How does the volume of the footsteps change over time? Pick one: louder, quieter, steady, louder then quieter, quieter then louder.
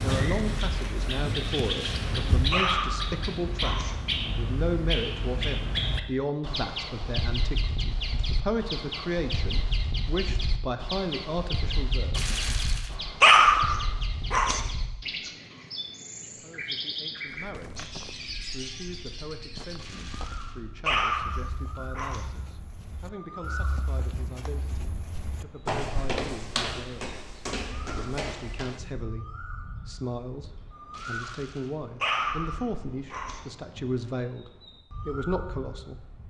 louder.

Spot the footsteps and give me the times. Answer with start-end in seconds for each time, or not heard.
17.2-28.9.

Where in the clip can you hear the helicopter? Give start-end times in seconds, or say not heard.
not heard.